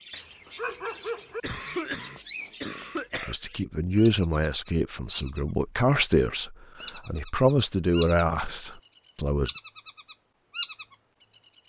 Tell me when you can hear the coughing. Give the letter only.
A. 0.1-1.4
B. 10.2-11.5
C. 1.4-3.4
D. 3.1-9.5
C.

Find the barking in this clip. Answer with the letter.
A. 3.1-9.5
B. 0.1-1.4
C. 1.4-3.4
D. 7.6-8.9
B.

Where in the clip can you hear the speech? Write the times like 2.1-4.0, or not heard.
3.1-9.5.